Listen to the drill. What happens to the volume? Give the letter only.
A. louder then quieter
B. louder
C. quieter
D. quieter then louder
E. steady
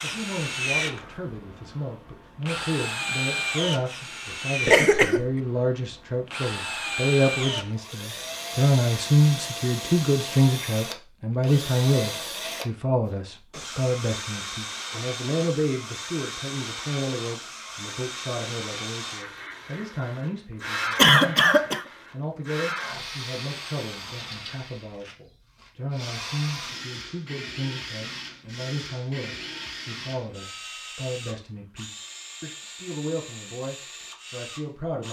C.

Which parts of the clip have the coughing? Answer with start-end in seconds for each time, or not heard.
4.7-5.2, 20.9-21.9.